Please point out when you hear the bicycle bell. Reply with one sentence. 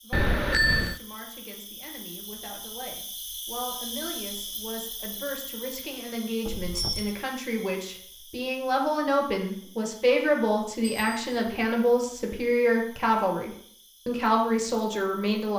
You can hear the bicycle bell from 0.1 to 1.0 s, from 6.5 to 7.2 s and from 10.8 to 11.7 s.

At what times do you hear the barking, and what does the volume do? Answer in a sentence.
You can't hear the barking here.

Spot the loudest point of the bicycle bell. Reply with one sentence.
The volume of the bicycle bell peaks at 1 second.